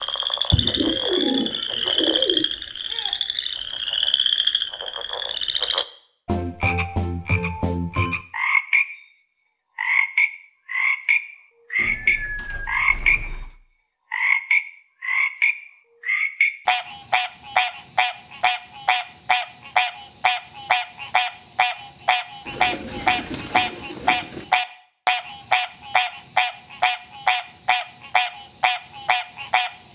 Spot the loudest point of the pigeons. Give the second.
1 s.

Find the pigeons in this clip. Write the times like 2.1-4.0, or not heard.
0.5-2.5, 11.8-13.6, 22.4-24.4.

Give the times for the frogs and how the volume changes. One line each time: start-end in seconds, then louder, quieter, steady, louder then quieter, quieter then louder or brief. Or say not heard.
0.0-29.9 steady.